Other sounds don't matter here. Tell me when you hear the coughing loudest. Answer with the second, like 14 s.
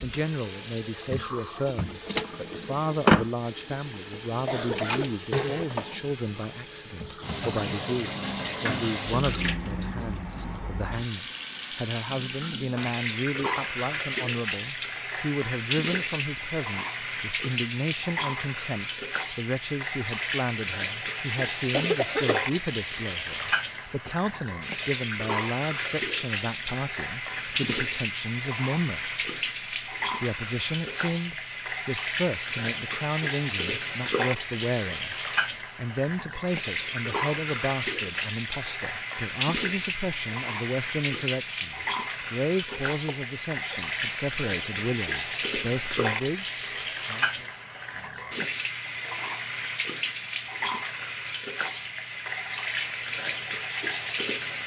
22 s.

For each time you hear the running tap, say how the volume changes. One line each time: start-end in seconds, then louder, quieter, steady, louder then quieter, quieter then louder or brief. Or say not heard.
0.0-54.6 steady.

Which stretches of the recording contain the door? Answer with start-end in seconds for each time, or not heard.
not heard.